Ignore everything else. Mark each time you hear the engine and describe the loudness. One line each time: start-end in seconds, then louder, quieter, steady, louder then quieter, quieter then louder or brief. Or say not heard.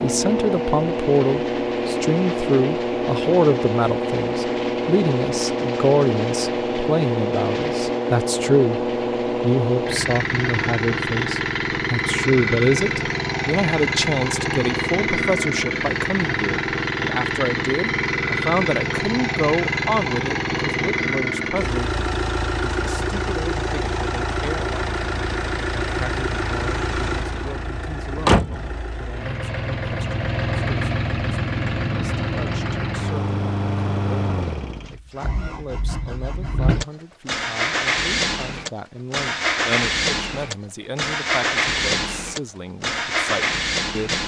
0.0-44.2 steady.